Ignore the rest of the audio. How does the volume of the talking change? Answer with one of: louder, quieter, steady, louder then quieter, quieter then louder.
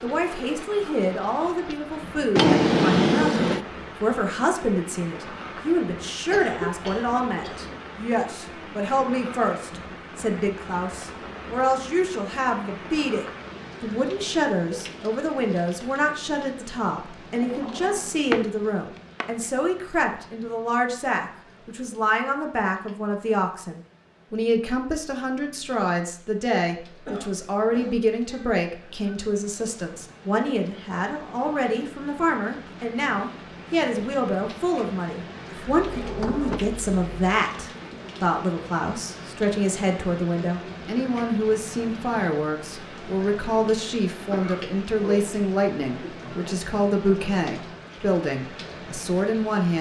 steady.